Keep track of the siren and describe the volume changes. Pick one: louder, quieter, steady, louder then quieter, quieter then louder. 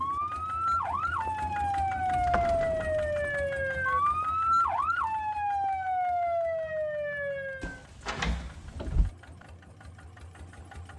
steady.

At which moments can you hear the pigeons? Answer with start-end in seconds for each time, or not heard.
not heard.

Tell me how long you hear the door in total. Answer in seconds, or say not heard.
2 s.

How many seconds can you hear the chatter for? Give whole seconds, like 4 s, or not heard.
not heard.